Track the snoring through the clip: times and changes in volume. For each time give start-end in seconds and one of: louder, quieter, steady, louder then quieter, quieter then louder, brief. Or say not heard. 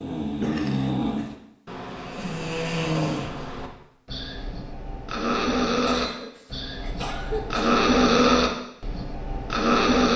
0.0-10.1 louder.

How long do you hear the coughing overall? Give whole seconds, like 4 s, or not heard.
3 s.